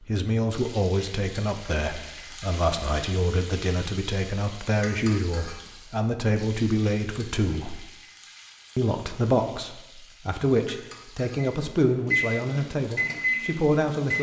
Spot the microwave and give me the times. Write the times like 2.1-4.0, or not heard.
11.4-14.1.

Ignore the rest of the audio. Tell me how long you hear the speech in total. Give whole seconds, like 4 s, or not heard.
13 s.